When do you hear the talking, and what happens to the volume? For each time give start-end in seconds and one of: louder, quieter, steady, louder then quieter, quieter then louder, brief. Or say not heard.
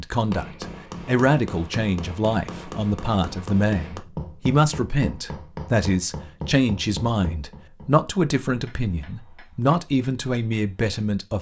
0.0-11.3 steady.